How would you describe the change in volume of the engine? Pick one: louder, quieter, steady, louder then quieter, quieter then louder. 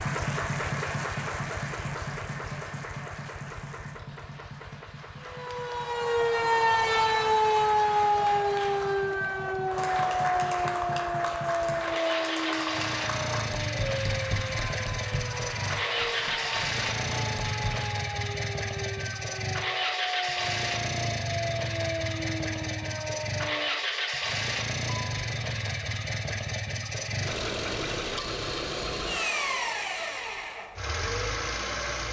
louder.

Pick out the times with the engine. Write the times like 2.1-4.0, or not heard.
0.0-32.0.